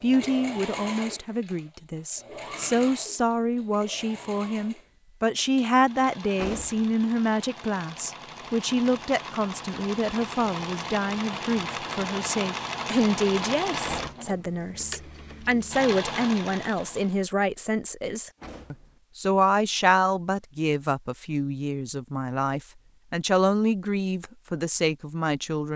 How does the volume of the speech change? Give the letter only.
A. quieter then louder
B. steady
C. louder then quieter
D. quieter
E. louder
B.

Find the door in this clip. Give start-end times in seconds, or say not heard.
6.3-6.9, 13.8-14.2, 18.4-19.0.